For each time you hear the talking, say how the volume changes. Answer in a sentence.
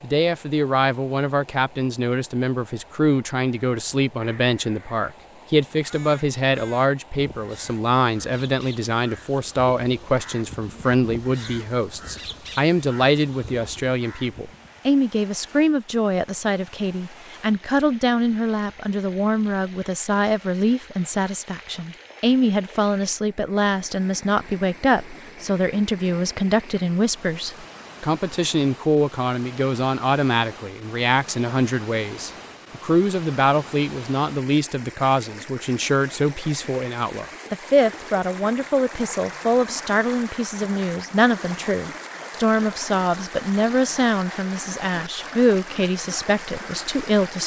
You can hear the talking from 0.0 to 47.4 s, at a steady volume.